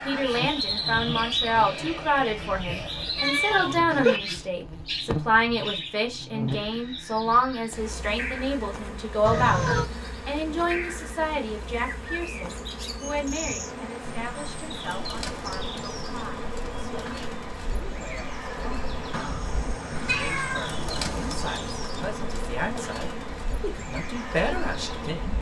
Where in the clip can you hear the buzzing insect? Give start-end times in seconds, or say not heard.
0.1-25.3.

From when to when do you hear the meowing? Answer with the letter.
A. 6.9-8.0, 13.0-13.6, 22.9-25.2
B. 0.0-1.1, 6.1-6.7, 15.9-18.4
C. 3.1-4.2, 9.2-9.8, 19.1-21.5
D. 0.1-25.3
C.